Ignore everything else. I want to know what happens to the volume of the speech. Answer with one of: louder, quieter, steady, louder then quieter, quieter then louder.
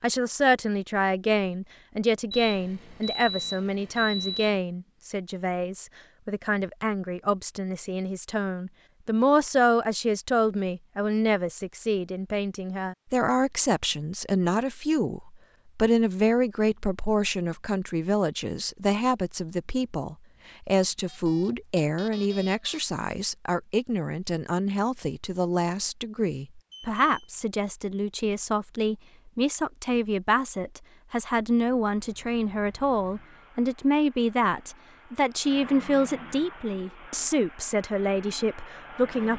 steady.